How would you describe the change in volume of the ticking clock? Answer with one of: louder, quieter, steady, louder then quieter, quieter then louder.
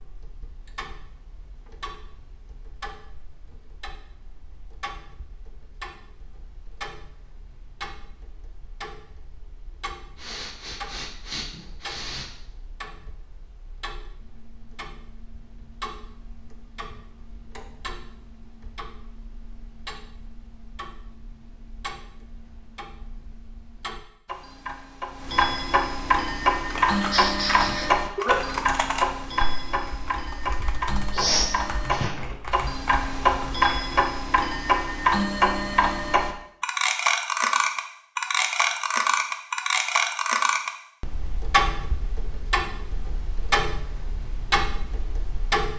louder.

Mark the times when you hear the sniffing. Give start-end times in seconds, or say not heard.
10.2-12.3, 26.9-28.5, 31.1-32.4.